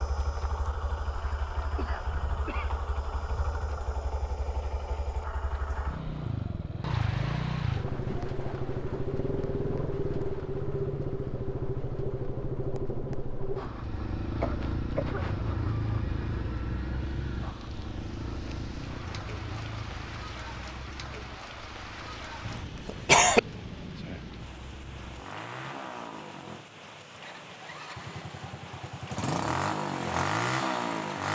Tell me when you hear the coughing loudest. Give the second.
23 s.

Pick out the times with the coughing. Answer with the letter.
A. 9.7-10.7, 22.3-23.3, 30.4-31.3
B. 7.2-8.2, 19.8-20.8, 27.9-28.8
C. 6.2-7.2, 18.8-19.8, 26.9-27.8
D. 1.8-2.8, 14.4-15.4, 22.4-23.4
D.